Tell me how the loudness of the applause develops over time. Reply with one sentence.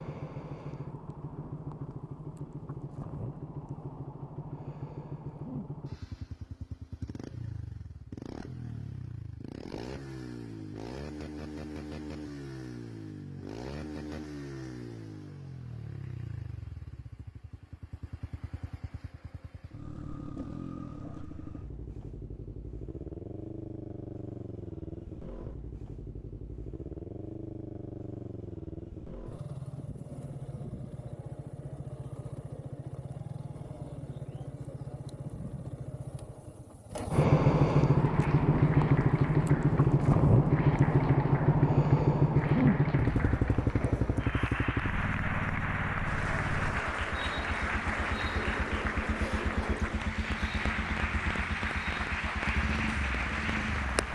The volume of the applause goes up.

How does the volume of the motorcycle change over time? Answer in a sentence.
The loudness of the motorcycle goes up, then down.